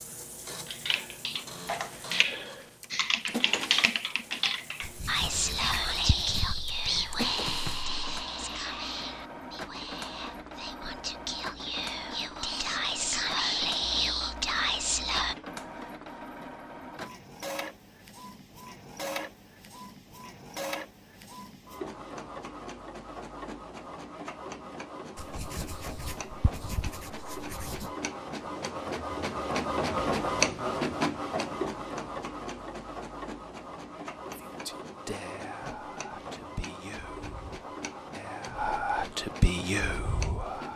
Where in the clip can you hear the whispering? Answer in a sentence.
The whispering can be heard from 5.0 to 15.3 s and from 34.2 to 40.7 s.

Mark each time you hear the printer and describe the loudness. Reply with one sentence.
The printer can be heard from 0.0 to 40.7 s, getting louder then quieter.